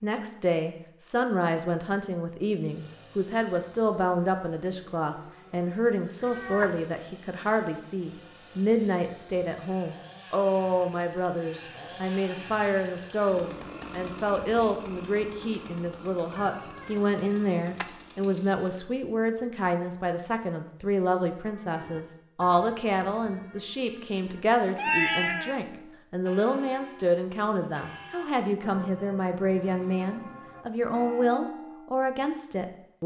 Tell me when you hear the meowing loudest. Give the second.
25 s.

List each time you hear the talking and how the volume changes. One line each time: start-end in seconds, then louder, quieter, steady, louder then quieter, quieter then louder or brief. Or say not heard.
0.0-33.0 steady.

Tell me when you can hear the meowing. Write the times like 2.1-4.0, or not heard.
6.2-6.7, 16.4-17.9, 24.8-25.6.